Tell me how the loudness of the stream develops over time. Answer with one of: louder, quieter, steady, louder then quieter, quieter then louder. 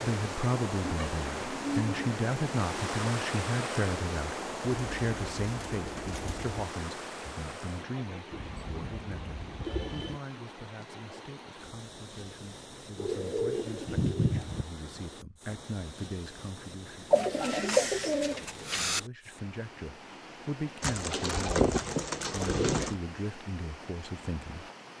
quieter.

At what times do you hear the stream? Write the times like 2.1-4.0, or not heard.
0.0-24.9.